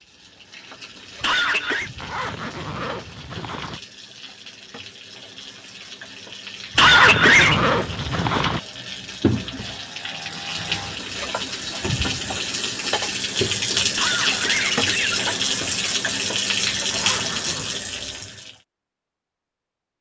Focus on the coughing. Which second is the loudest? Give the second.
7 s.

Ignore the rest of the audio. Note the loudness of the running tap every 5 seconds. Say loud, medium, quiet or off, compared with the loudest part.
quiet, medium, loud, loud.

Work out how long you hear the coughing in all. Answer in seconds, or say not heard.
3 s.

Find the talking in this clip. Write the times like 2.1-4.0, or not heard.
not heard.